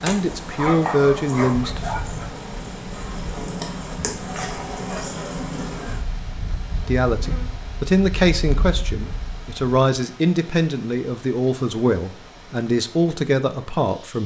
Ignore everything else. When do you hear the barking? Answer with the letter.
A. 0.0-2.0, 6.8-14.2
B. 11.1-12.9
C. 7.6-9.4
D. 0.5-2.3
D.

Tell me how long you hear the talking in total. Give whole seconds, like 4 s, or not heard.
9 s.